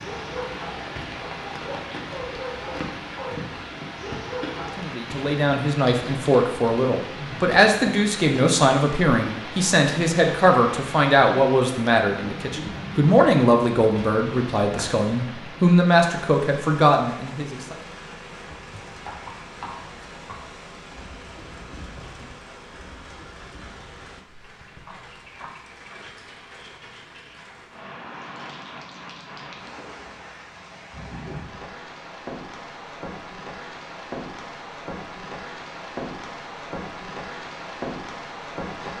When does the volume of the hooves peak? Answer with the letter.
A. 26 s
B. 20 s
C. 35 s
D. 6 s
B.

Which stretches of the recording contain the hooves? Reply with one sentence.
You can hear the hooves from 18.4 to 25.5 s.